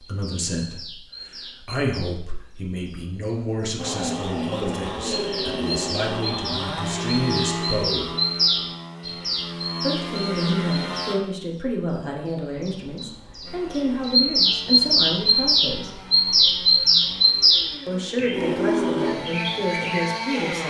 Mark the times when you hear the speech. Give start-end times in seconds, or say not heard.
0.0-8.2, 9.8-16.1, 17.9-20.6.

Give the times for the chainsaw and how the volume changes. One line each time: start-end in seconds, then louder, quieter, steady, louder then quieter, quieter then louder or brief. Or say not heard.
3.8-11.2 quieter then louder
13.4-20.6 louder.